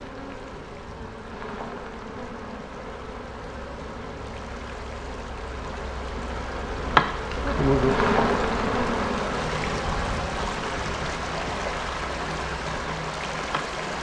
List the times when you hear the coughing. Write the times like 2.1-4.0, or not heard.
not heard.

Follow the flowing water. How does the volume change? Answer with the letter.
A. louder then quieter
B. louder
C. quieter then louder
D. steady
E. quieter
B.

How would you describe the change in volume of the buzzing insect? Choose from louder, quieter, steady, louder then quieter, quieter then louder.
louder then quieter.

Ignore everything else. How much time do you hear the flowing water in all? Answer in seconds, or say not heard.
14 s.